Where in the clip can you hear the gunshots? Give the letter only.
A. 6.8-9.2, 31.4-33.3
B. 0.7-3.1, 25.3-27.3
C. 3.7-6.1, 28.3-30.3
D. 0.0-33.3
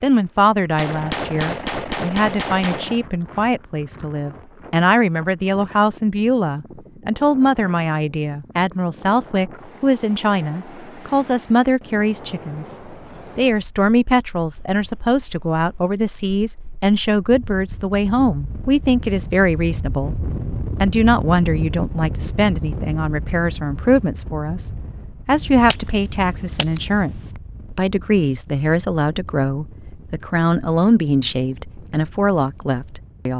B.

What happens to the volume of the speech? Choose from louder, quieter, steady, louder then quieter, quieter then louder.
steady.